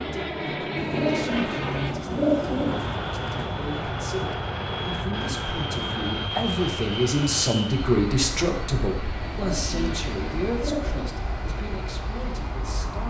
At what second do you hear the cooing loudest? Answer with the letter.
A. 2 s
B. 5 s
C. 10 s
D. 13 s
A.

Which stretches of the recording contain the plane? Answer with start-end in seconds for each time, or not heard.
0.0-13.0.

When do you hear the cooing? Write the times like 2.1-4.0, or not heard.
0.8-3.0, 9.2-11.1.